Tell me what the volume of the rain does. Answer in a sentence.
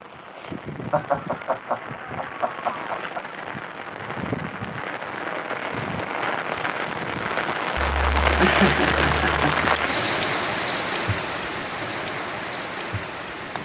The volume of the rain goes up, then down.